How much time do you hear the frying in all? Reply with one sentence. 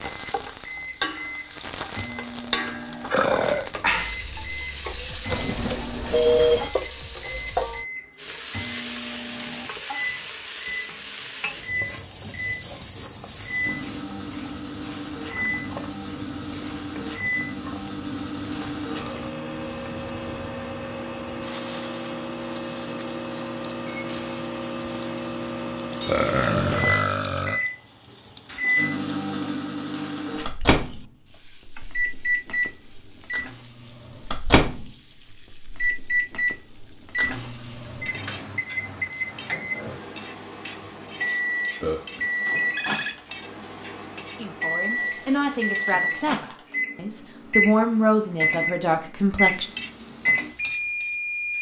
You can hear the frying for 48 seconds altogether.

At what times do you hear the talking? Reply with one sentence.
You can hear the talking from 44.4 to 49.6 s.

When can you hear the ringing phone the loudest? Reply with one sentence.
The volume of the ringing phone peaks at 6 seconds.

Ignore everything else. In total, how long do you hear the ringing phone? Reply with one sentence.
The ringing phone can be heard for 3 seconds in total.